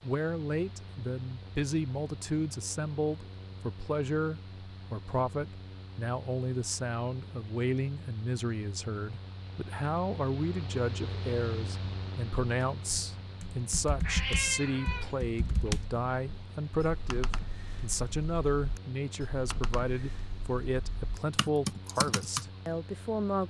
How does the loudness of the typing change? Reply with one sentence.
The volume of the typing goes down, then up.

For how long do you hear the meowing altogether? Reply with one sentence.
The meowing can be heard for 2 seconds in total.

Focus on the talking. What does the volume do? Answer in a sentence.
The loudness of the talking stays about the same.